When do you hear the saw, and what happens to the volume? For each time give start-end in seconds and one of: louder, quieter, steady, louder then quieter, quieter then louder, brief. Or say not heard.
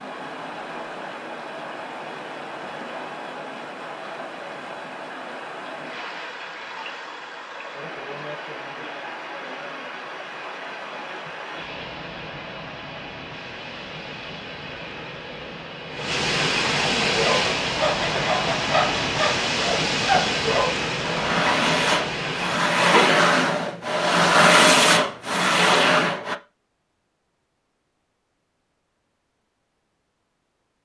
17.1-26.4 louder.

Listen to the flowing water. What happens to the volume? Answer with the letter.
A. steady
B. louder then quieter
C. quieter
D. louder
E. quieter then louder
D.